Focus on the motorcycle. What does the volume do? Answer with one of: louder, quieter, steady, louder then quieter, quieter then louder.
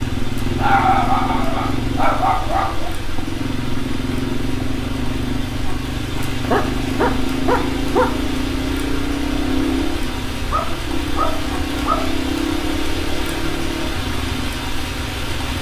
steady.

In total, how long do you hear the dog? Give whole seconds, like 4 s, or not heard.
6 s.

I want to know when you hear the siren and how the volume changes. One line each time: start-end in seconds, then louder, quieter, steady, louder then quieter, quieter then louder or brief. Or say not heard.
not heard.